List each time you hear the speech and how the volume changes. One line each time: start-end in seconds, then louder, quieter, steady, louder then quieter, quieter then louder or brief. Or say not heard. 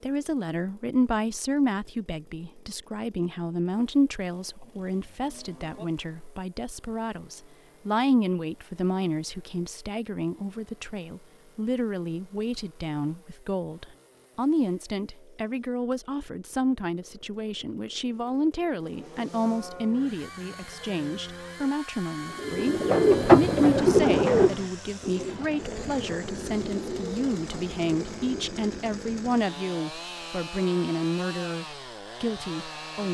0.0-33.0 steady.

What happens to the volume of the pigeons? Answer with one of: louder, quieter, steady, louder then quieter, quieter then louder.
quieter.